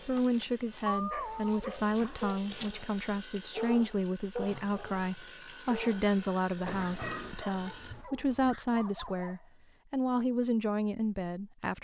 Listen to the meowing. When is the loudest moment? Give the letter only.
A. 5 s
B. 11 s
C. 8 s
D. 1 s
D.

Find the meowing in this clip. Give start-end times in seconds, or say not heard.
0.8-2.2, 6.5-8.1.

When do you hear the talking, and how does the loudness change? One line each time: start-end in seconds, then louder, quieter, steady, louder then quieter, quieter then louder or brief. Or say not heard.
0.1-11.7 steady.